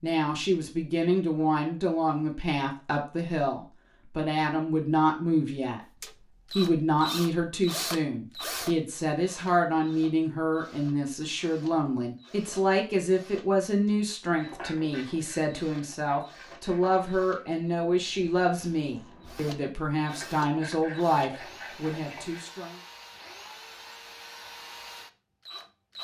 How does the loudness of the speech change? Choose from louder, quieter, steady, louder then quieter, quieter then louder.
steady.